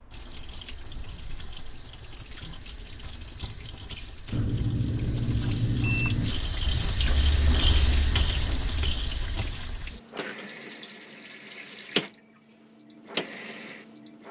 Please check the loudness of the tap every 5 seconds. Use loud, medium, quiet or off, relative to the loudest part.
quiet, loud, medium.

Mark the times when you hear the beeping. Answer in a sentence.
You can hear the beeping from 4.3 to 6.3 s.